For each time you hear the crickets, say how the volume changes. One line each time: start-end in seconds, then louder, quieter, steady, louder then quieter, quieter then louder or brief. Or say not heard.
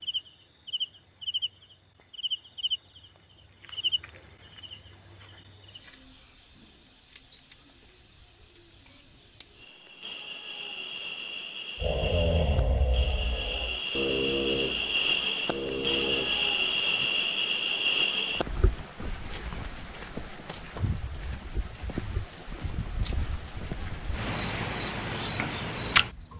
0.0-26.3 louder.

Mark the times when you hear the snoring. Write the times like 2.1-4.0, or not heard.
11.8-17.1.